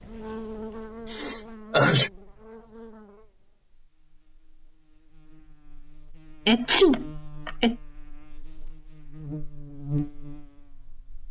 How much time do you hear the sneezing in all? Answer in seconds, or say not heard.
2 s.